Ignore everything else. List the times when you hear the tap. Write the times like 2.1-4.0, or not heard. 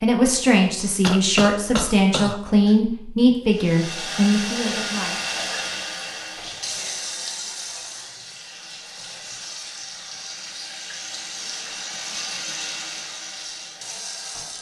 3.5-14.5.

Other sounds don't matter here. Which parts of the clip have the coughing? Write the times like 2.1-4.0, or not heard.
1.0-2.8.